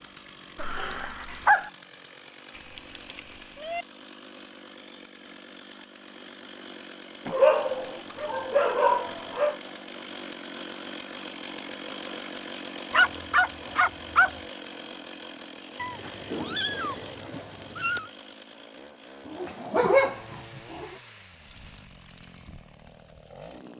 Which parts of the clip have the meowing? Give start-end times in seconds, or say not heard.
2.5-3.9, 15.8-18.1.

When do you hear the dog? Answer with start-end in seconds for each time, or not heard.
0.6-1.7, 7.2-9.6, 12.9-14.3, 19.2-20.9.